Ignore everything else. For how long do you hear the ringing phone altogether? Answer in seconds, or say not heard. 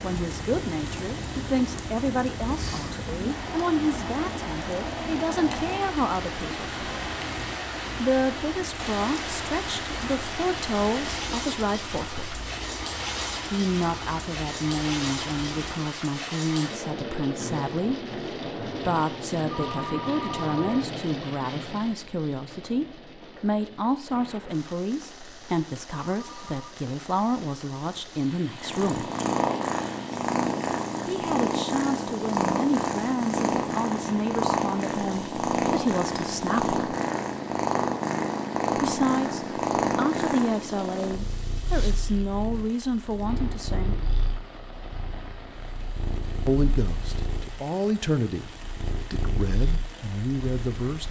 2 s.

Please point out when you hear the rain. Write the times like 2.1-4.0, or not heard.
0.0-51.0.